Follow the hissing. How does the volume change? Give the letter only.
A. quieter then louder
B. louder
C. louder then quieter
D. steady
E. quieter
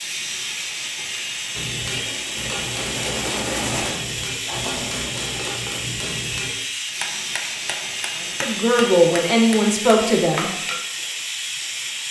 D.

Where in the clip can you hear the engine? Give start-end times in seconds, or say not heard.
1.9-5.6.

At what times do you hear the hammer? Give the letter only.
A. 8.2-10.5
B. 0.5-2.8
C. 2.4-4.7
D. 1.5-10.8
D.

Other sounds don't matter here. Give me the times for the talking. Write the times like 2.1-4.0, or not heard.
8.2-10.5.